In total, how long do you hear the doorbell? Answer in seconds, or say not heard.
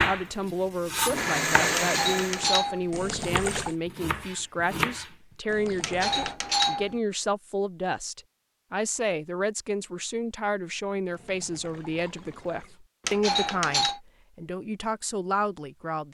3 s.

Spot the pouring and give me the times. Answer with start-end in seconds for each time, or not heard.
2.9-3.8, 5.5-6.3, 11.1-12.8.